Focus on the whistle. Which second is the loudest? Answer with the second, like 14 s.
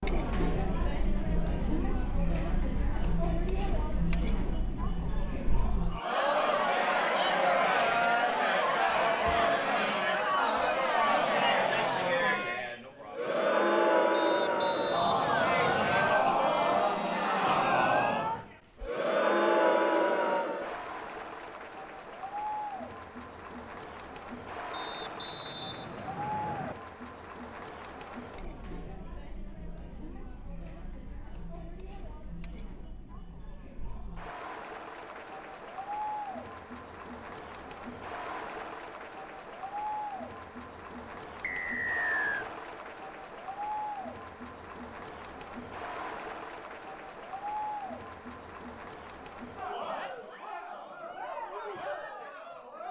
42 s.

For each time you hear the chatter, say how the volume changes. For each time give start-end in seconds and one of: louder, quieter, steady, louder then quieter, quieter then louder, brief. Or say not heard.
0.0-52.8 quieter.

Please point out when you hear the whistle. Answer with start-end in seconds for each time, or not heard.
14.1-16.1, 24.7-26.8, 41.4-42.5.